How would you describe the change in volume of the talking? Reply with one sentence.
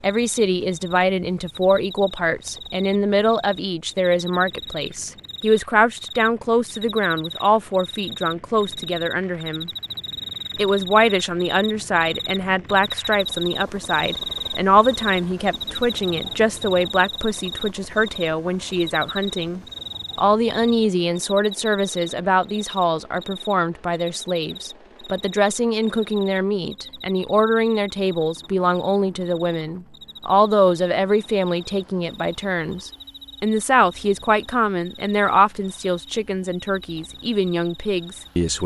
The volume of the talking stays about the same.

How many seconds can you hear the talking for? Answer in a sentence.
The talking can be heard for 38 seconds in total.